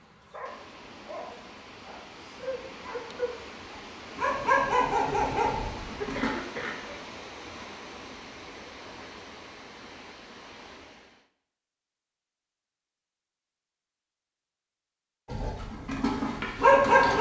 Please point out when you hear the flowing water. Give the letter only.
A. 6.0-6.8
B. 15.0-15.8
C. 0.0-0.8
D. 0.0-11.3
D.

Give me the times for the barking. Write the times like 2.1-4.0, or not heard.
0.0-6.3, 15.3-17.1.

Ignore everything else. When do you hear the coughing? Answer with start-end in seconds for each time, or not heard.
6.0-6.8.